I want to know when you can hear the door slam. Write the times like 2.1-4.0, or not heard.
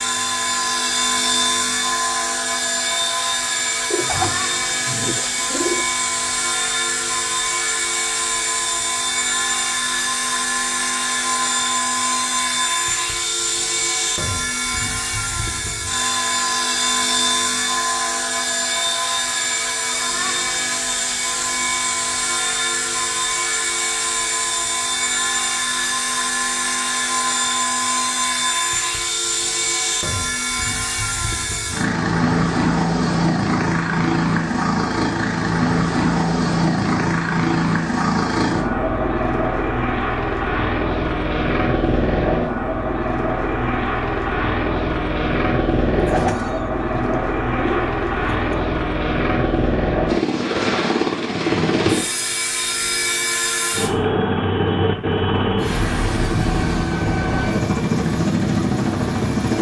not heard.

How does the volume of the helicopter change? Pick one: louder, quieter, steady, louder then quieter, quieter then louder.
steady.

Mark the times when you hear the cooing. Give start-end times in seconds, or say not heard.
3.9-5.8, 46.0-48.6.